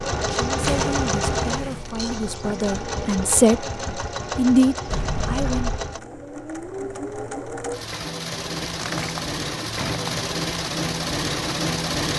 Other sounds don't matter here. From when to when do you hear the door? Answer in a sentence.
You can hear the door from 0.6 to 1.9 s, from 4.8 to 5.8 s and from 8.6 to 10.3 s.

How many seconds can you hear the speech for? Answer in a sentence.
You can hear the speech for 5 seconds altogether.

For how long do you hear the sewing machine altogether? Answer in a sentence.
The sewing machine can be heard for 12 seconds in total.